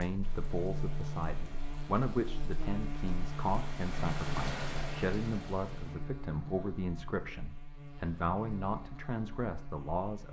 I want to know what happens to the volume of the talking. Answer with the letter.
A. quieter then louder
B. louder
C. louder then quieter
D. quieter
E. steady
E.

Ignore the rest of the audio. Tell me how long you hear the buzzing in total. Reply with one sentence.
The buzzing can be heard for 10 seconds in total.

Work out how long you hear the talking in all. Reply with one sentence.
The talking can be heard for 10 seconds in total.